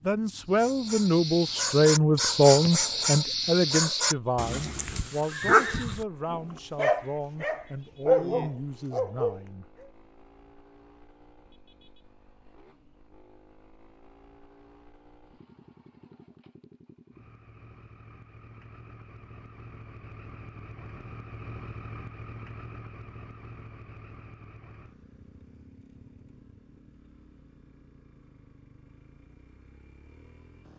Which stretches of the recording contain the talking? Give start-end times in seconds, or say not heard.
0.0-9.7.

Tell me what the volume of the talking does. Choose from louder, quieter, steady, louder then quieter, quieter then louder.
quieter.